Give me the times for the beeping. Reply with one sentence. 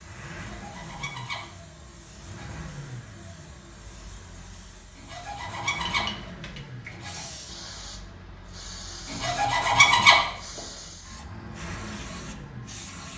The beeping can't be heard in this clip.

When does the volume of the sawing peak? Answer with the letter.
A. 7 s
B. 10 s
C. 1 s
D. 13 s
B.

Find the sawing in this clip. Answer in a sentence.
You can hear the sawing from 0.4 to 2.6 s, from 5.0 to 7.2 s and from 9.1 to 10.6 s.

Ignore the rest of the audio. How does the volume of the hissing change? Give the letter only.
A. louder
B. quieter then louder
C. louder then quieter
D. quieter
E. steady
A.